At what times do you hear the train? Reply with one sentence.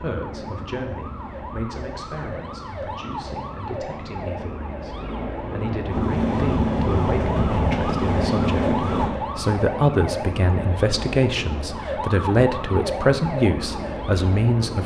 You can hear the train from 5.8 to 9.2 s.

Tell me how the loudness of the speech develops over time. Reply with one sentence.
The volume of the speech goes up.